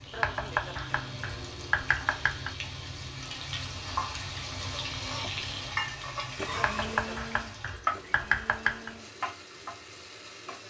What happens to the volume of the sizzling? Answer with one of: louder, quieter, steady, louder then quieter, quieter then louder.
louder then quieter.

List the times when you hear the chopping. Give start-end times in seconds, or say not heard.
0.1-2.5, 6.5-8.9.